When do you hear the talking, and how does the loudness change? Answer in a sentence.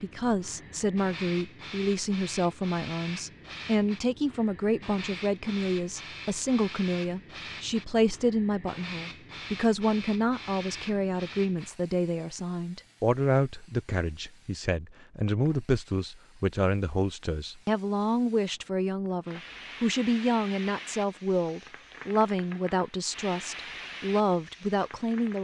The talking can be heard from 0.0 to 25.3 s, at a steady volume.